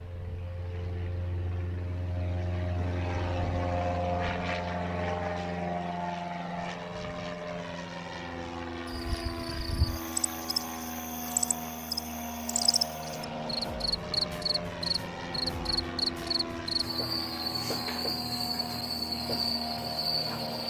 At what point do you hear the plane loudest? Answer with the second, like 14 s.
4 s.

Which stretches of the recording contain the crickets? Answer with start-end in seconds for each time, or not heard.
8.8-20.6.